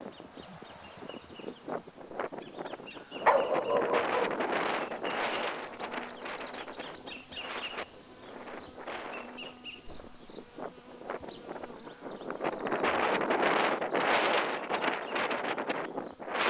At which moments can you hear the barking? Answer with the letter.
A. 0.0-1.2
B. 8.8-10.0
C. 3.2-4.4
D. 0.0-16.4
C.